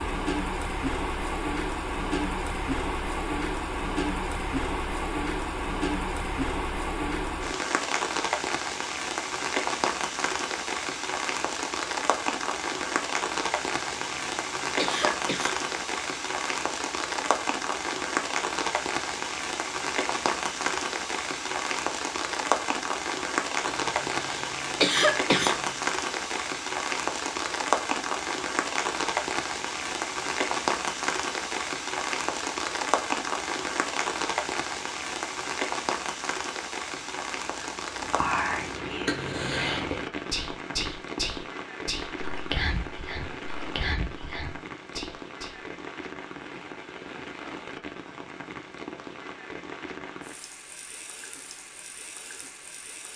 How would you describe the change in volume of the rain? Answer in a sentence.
The loudness of the rain goes down.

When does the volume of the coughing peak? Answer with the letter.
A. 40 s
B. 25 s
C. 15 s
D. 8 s
B.